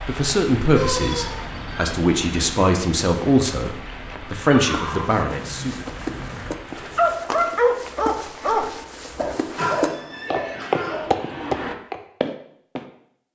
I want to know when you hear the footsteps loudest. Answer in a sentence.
The volume of the footsteps peaks at 11 seconds.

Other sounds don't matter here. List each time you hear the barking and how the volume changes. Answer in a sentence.
The barking can be heard from 7.0 to 11.8 s, getting quieter.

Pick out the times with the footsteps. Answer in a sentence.
The footsteps can be heard from 4.7 to 12.8 s.